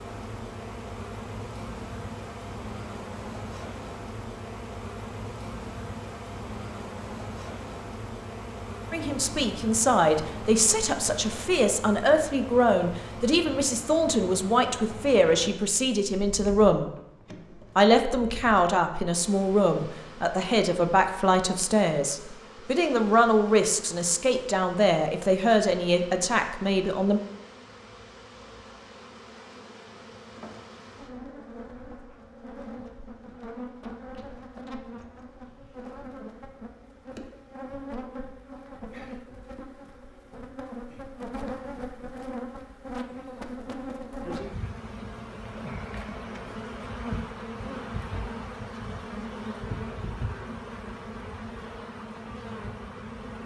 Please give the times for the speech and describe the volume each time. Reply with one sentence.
You can hear the speech from 8.9 to 16.9 s, at a steady volume; and from 17.8 to 27.2 s, at a steady volume.